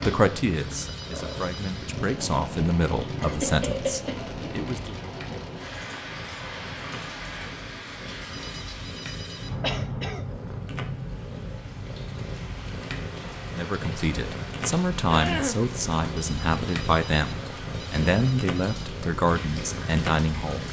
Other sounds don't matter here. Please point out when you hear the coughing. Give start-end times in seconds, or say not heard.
3.2-4.2, 9.6-10.2, 15.1-15.7.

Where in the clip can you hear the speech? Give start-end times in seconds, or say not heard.
0.0-5.0, 13.5-20.6.